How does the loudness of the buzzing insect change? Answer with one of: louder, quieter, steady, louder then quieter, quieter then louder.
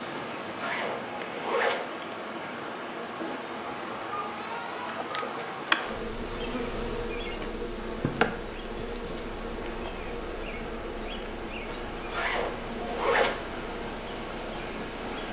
louder then quieter.